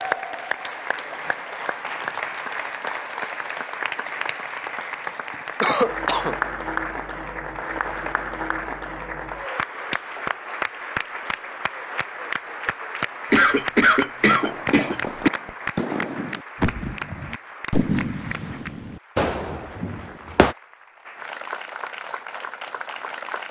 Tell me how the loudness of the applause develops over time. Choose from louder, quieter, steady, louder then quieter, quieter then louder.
quieter.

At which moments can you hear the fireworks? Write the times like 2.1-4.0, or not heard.
14.2-20.6.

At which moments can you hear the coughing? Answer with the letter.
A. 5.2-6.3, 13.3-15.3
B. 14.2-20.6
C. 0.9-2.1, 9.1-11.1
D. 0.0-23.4
A.